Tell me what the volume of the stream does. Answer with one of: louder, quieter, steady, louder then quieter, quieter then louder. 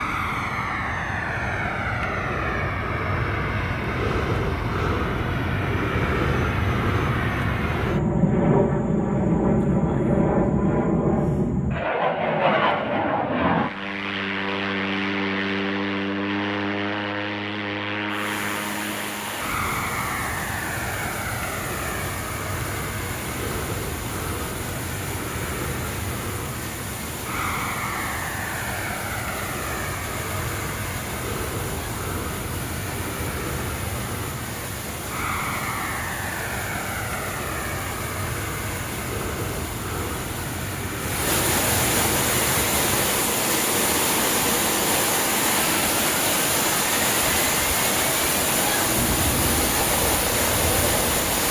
louder.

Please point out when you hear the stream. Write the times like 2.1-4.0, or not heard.
18.1-51.4.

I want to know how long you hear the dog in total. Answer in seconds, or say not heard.
not heard.